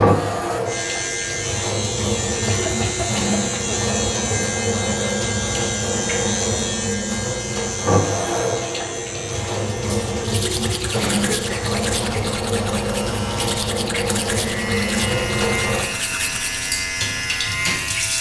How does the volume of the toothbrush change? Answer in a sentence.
The loudness of the toothbrush stays about the same.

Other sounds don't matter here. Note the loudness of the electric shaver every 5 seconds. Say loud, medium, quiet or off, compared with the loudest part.
loud, loud, medium, loud.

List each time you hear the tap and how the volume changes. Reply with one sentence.
You can hear the tap from 0.0 to 18.1 s, at a steady volume.